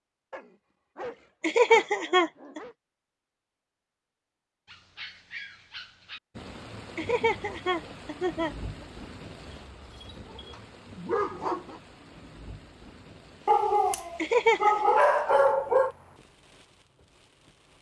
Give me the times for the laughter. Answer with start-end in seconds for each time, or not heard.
1.4-2.6, 7.0-8.6, 14.2-14.8.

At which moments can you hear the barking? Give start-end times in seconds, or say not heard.
0.3-2.8, 4.7-6.2, 9.4-11.8, 13.4-15.9.